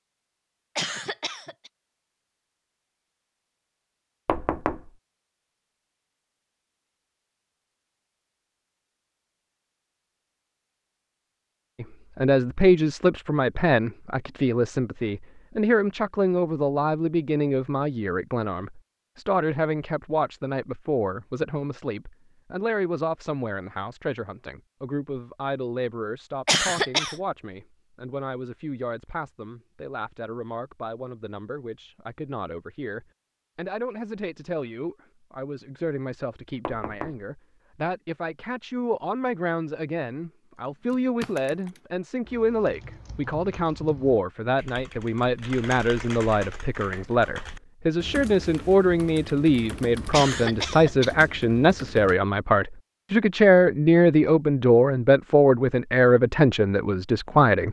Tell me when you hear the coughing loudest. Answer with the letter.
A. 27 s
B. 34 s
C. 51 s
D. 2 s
A.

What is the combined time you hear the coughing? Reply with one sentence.
The coughing can be heard for 3 seconds in total.